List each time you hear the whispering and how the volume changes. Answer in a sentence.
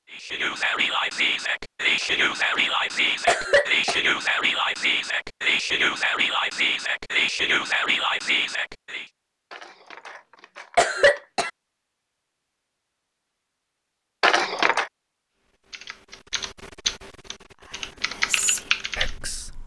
You can hear the whispering from 0.1 to 9.1 s, at a steady volume; and briefly from 17.6 to 19.6 s.